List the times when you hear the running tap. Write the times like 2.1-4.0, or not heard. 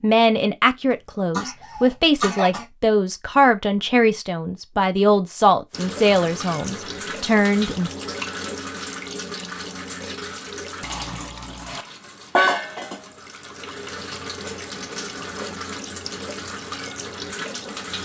5.7-18.0.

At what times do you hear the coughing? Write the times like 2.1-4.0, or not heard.
0.9-2.6.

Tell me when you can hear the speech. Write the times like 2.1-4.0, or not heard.
0.0-8.0.